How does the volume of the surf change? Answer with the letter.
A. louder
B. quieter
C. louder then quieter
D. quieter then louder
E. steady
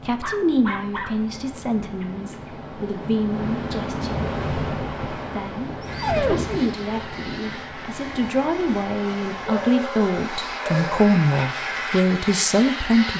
C.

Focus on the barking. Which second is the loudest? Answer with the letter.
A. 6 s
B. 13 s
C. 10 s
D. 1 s
A.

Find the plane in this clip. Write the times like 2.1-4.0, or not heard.
5.8-13.1.